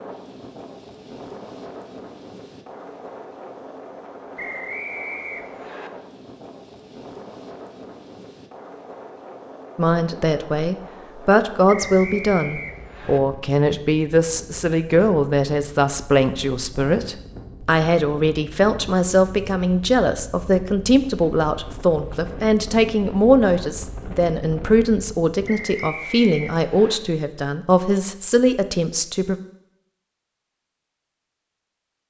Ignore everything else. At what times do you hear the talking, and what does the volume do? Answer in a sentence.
The talking can be heard from 9.8 to 29.4 s, at a steady volume.